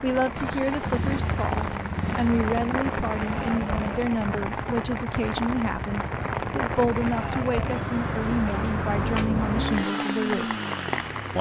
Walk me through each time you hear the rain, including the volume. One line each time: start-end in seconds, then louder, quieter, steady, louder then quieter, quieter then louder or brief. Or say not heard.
0.0-11.3 steady.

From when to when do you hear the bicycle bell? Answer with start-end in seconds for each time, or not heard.
not heard.